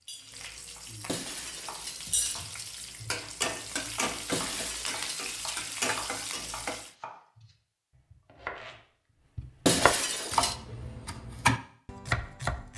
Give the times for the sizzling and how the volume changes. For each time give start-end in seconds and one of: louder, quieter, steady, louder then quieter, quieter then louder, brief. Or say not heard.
0.0-6.9 louder.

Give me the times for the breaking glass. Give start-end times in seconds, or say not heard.
1.1-2.5, 4.3-5.6, 9.7-10.6.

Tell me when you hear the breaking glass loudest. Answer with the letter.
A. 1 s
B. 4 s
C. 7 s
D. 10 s
D.